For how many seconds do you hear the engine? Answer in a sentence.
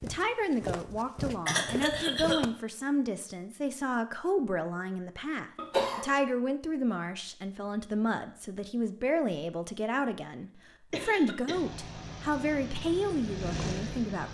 The engine can be heard for 3 seconds in total.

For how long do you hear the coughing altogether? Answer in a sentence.
You can hear the coughing for 2 seconds altogether.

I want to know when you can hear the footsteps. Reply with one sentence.
You can hear the footsteps from 0.0 to 2.5 s.